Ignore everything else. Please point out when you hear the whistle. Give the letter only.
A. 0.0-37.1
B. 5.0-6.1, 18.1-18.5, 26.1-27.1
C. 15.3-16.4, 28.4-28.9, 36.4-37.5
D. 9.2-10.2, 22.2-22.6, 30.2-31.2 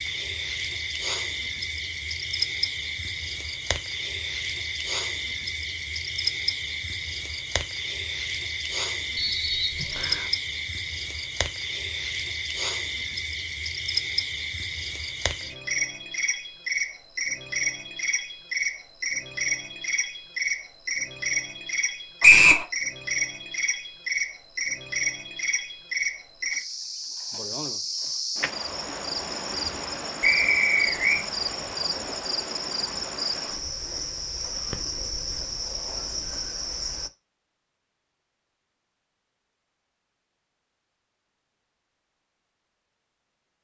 D.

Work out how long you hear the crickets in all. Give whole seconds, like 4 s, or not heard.
37 s.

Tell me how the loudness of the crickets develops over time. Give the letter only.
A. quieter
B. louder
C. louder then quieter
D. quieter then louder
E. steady
E.